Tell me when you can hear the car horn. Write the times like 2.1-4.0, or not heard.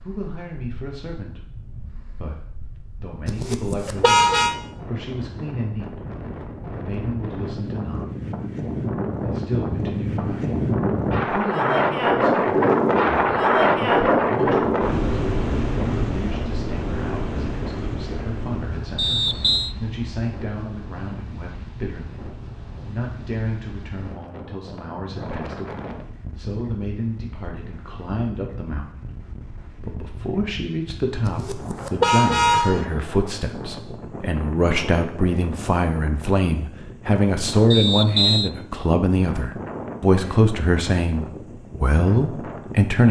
3.2-4.5, 31.2-32.9.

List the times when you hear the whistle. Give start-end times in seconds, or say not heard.
18.9-19.8, 37.7-38.5.